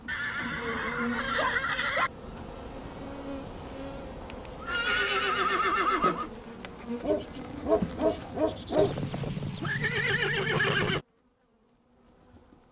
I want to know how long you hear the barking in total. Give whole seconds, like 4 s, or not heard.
3 s.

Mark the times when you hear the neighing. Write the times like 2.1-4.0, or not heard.
0.1-2.1, 4.6-6.3, 8.8-11.1.